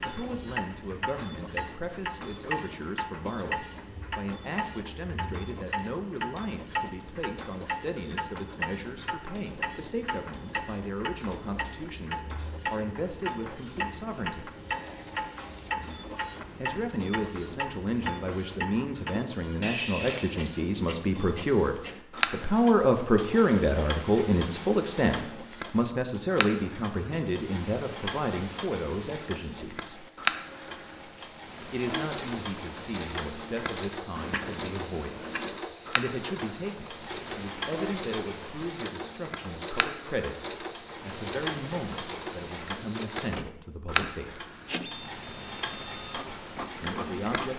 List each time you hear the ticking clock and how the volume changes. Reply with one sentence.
The ticking clock can be heard from 0.0 to 47.5 s, at a steady volume.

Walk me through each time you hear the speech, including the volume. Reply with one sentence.
The speech can be heard from 0.0 to 14.5 s, at a steady volume; from 16.6 to 30.1 s, getting louder then quieter; from 31.7 to 44.5 s, at a steady volume; and briefly from 46.8 to 47.5 s.